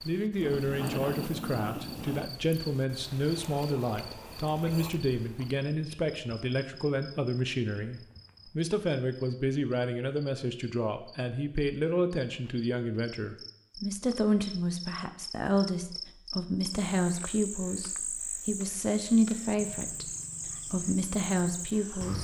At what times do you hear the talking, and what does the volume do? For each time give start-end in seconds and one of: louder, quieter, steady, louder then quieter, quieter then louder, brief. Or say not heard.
0.1-22.1 steady.